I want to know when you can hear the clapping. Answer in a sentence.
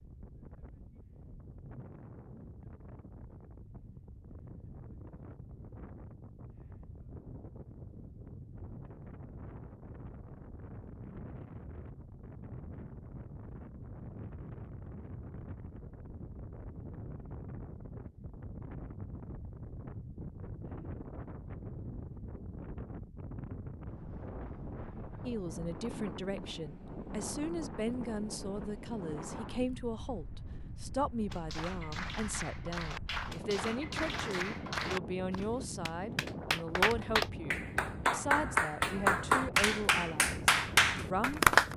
You can hear the clapping from 31.3 to 41.7 s.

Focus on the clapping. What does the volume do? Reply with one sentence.
The volume of the clapping goes up.